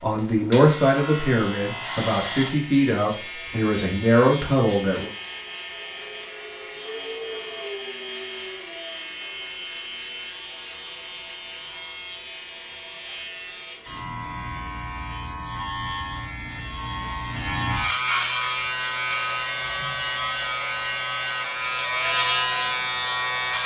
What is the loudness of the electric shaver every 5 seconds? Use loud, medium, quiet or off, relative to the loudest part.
medium, medium, medium, loud, loud.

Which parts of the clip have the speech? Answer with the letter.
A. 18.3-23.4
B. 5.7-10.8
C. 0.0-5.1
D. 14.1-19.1
C.